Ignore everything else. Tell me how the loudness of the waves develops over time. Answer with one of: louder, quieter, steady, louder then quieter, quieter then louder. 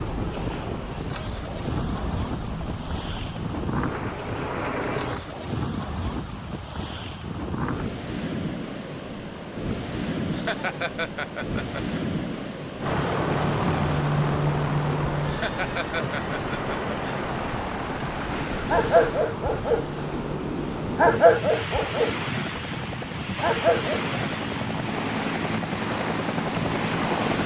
steady.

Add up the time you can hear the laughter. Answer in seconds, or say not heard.
4 s.